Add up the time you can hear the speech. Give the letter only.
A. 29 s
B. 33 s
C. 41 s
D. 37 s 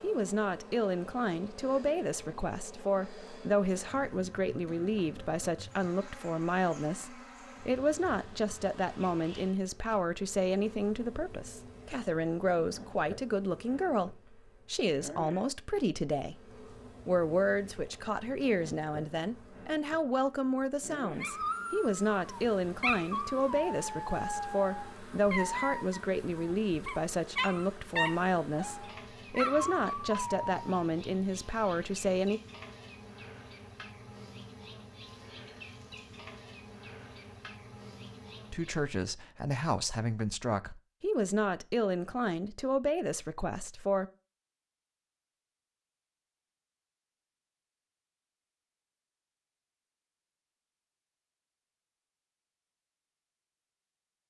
D.